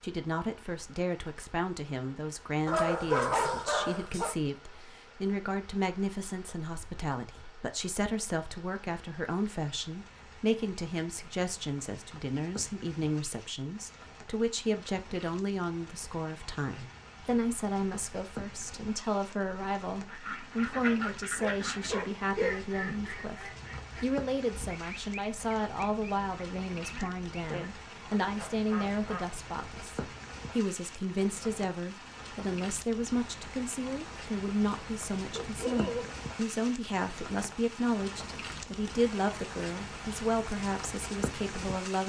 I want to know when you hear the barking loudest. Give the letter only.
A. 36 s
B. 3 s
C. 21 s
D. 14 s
B.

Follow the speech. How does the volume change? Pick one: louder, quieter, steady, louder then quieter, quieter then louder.
steady.